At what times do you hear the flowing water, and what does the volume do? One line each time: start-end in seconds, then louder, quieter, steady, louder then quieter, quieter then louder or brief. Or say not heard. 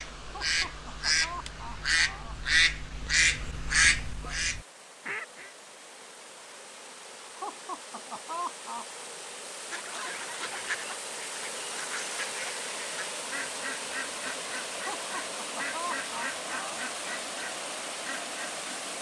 0.0-18.9 louder.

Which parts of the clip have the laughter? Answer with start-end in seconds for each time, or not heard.
0.2-2.5, 7.2-9.1, 14.7-16.9.